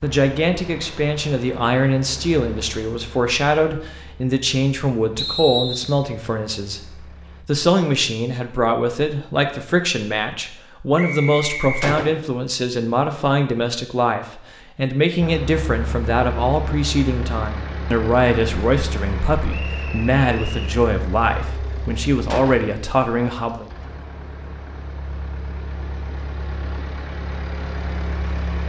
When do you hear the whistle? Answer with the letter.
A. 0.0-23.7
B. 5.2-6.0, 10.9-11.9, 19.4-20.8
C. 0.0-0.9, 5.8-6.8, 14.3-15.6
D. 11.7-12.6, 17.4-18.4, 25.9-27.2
B.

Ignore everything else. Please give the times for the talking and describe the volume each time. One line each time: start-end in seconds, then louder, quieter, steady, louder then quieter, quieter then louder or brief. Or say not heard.
0.0-23.7 steady.